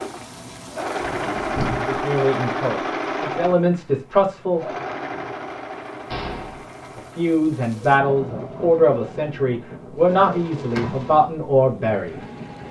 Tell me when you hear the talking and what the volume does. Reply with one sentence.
The talking can be heard briefly from 1.8 to 4.7 s; and from 7.0 to 12.2 s, getting quieter then louder.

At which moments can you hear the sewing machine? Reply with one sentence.
The sewing machine can be heard from 0.0 to 12.6 s.